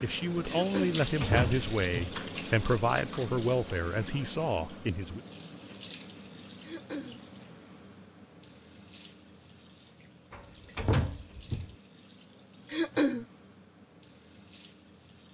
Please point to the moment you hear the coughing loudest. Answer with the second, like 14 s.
13 s.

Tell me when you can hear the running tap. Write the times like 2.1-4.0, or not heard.
0.0-15.2.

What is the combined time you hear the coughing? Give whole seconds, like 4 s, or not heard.
2 s.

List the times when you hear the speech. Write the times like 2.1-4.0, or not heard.
0.0-5.2.